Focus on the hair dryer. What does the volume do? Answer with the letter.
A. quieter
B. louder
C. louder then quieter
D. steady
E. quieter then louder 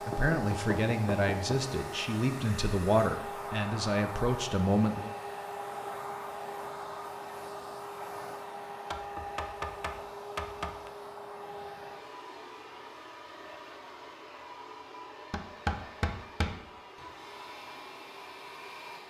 A.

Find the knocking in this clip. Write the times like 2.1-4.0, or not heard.
0.1-1.6, 8.9-10.9, 15.3-17.1.